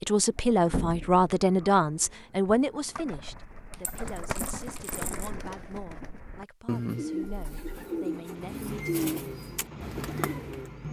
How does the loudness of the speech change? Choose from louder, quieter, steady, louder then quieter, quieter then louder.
quieter.